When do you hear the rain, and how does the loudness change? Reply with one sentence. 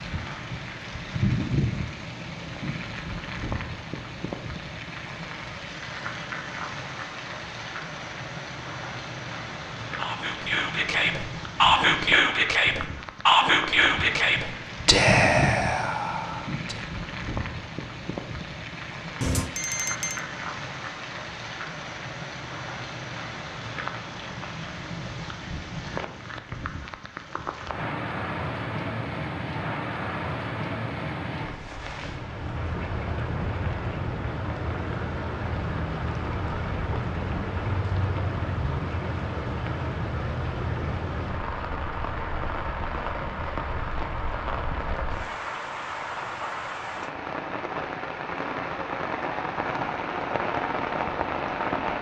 The rain can be heard from 0.0 to 51.9 s, at a steady volume.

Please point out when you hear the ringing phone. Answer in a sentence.
You can hear the ringing phone from 19.2 to 20.2 s.